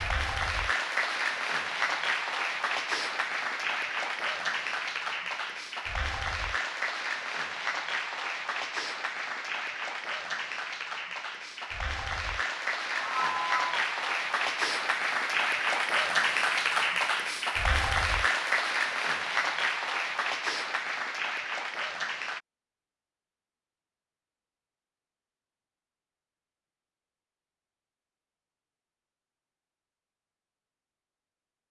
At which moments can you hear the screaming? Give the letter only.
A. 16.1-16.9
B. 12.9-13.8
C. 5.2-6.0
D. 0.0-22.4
B.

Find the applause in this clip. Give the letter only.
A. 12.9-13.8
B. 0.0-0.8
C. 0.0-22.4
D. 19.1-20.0
C.